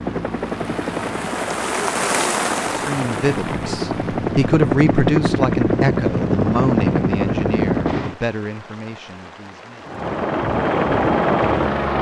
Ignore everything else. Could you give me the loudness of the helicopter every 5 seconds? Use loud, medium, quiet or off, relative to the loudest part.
medium, loud, loud.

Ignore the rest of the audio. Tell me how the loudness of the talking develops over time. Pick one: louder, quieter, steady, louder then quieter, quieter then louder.
louder then quieter.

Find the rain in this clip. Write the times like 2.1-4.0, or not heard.
0.0-11.9.